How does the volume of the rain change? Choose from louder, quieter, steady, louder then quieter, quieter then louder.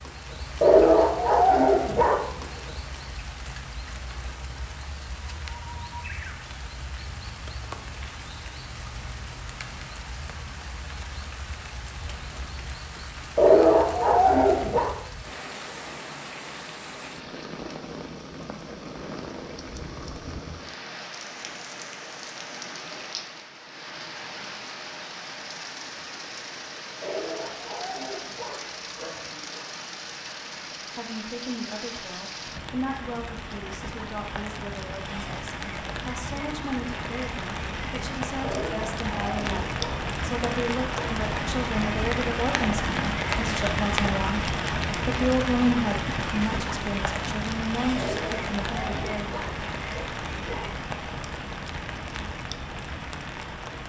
louder.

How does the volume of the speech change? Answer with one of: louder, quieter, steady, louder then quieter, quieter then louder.
louder.